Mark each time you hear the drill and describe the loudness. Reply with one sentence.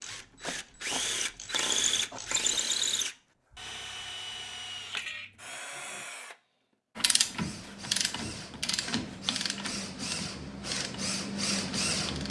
You can hear the drill from 0.0 to 12.2 s, getting quieter then louder.